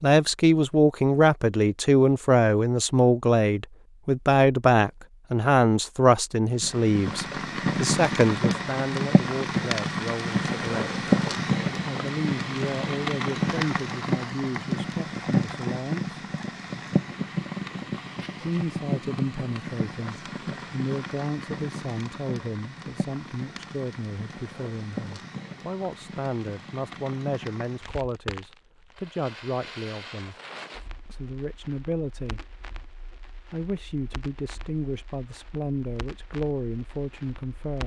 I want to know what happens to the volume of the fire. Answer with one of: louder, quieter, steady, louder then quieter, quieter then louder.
quieter.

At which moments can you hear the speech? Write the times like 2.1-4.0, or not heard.
0.0-10.9, 11.8-16.1, 18.4-30.4, 31.1-32.4, 33.5-37.8.